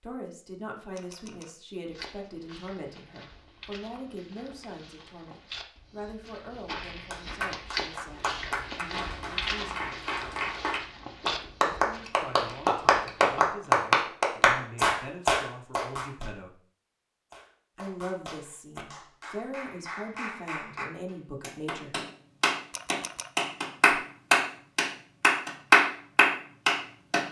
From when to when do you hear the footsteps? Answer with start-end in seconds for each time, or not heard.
1.9-13.3.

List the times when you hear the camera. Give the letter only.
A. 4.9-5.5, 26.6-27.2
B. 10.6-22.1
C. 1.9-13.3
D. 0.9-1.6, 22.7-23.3
D.